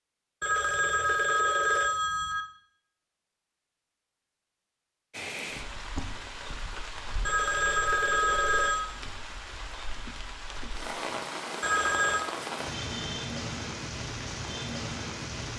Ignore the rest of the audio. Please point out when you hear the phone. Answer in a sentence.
You can hear the phone from 0.4 to 2.5 s, from 7.2 to 8.8 s and from 11.6 to 12.2 s.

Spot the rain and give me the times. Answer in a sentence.
You can hear the rain from 5.1 to 15.5 s.